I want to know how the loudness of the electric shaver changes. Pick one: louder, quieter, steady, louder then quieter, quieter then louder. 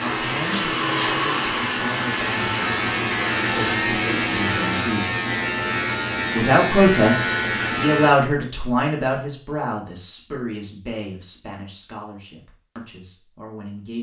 louder.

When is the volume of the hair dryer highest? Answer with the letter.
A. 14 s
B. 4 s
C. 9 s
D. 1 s
D.